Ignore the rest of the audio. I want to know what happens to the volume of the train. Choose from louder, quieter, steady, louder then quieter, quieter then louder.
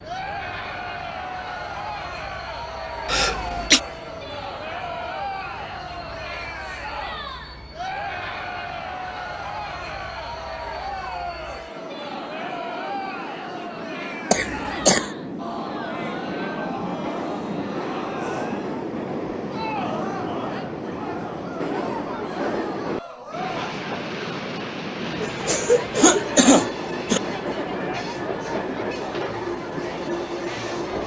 louder.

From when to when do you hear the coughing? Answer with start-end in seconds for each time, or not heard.
3.0-3.8, 14.3-15.1, 25.2-27.2.